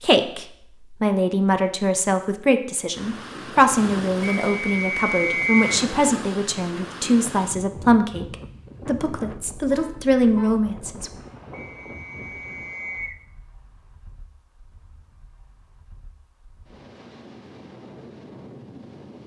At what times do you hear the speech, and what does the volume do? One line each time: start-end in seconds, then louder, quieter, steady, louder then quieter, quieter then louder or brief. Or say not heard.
0.0-11.1 steady.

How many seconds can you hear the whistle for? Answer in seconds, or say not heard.
3 s.